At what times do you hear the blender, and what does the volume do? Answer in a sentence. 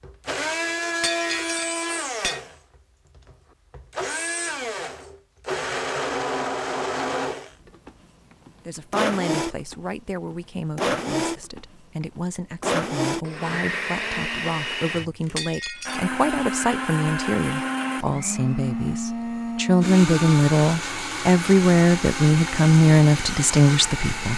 You can hear the blender from 0.0 to 24.3 s, at a steady volume.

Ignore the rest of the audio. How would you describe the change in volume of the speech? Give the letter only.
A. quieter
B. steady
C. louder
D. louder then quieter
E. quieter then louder
C.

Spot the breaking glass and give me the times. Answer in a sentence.
You can hear the breaking glass from 1.0 to 2.4 s and from 15.3 to 16.0 s.